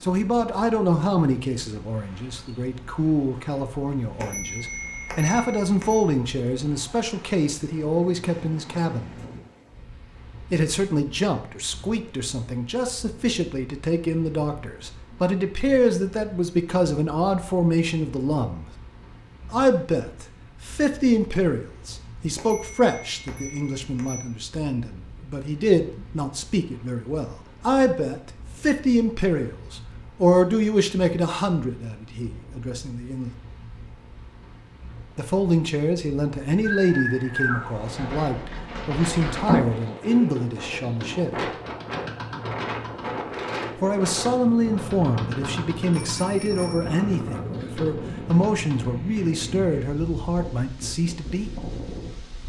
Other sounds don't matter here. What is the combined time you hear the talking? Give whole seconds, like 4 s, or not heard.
45 s.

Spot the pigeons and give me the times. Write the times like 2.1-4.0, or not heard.
36.6-48.9.